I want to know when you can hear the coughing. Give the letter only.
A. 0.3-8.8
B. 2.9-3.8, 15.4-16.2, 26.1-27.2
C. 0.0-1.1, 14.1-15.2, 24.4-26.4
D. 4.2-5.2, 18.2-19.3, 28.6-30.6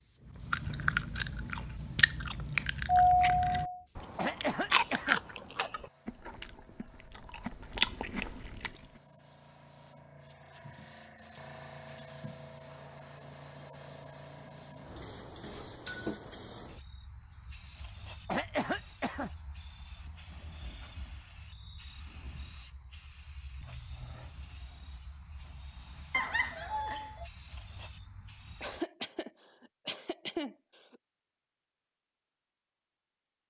D.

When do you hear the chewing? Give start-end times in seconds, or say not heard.
0.3-8.8.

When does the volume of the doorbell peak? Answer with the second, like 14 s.
3 s.